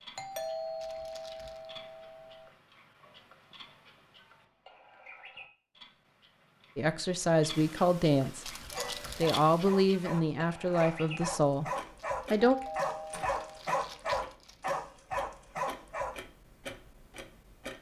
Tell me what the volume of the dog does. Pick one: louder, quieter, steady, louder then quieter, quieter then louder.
louder.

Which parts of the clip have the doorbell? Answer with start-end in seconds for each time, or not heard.
0.1-2.5, 8.7-9.2, 12.4-13.6.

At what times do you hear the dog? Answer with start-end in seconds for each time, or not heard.
8.7-16.2.